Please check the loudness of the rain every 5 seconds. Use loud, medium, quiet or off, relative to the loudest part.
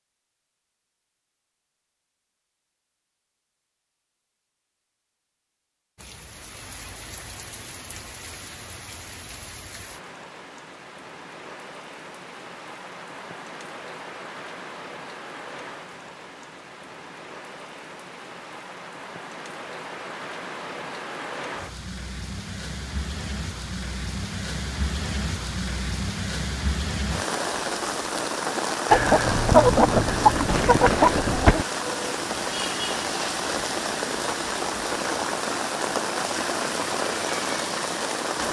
off, quiet, quiet, quiet, medium, loud, loud, loud.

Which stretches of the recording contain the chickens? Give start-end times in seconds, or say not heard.
28.9-31.6.